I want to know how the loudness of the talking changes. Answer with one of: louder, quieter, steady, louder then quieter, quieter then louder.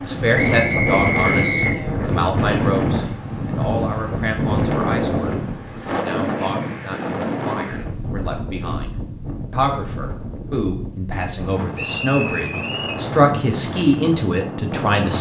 quieter then louder.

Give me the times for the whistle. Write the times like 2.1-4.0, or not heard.
0.3-1.8, 11.8-13.0.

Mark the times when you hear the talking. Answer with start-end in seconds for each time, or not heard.
0.0-15.1.